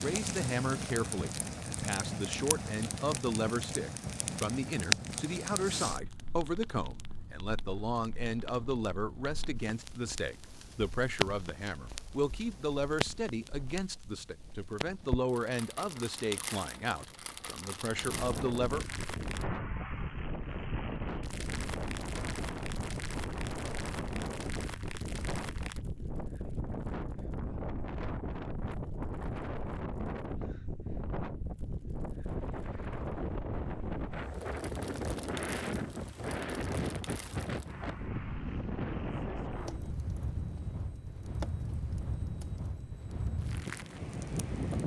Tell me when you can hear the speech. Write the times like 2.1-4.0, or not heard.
0.0-18.9.